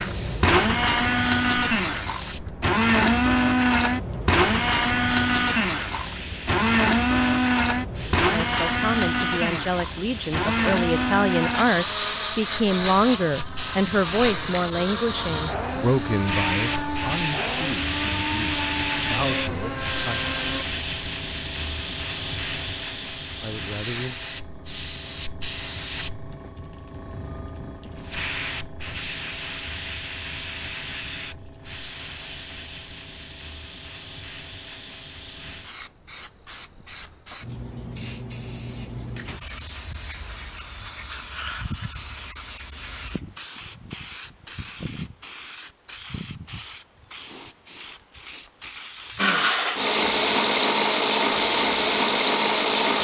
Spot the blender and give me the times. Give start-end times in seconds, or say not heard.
0.0-20.6, 49.1-52.9.